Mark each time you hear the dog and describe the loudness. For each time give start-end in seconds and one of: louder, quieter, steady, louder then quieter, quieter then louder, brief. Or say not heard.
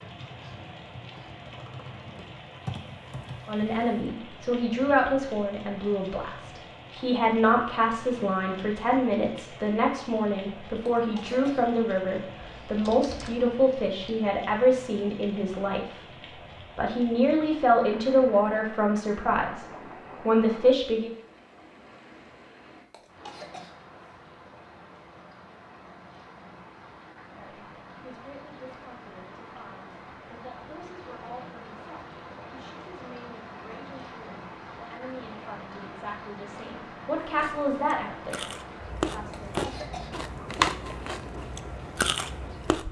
not heard.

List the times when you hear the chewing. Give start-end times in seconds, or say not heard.
37.2-42.8.